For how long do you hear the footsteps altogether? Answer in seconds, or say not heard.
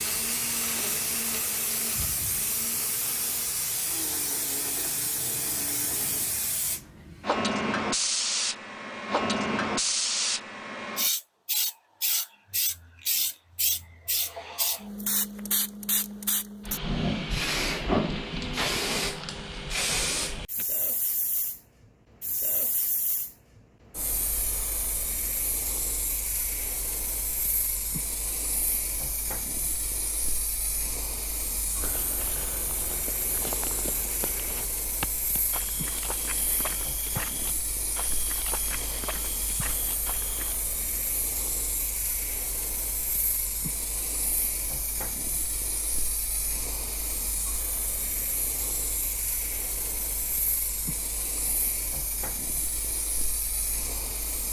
9 s.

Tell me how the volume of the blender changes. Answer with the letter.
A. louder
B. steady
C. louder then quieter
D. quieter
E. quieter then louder
D.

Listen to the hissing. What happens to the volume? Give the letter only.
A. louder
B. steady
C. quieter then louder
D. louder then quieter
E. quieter
E.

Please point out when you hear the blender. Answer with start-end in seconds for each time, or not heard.
0.0-6.3.